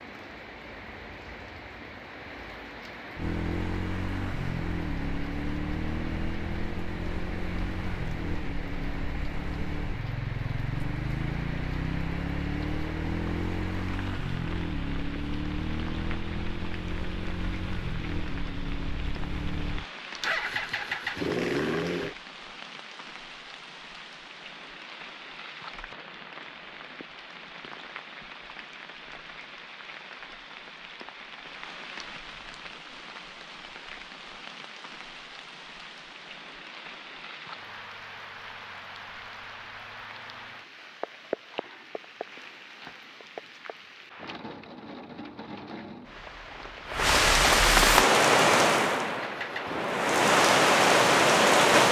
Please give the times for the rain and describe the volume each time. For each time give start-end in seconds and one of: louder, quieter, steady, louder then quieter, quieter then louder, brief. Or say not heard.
0.0-51.8 louder.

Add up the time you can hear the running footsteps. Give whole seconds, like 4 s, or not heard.
not heard.